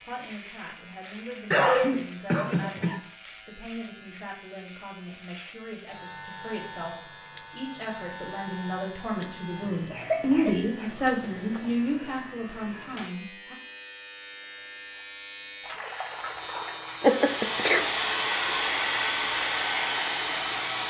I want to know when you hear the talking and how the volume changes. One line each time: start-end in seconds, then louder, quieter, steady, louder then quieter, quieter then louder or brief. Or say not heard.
0.0-13.6 louder.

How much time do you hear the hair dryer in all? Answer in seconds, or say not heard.
4 s.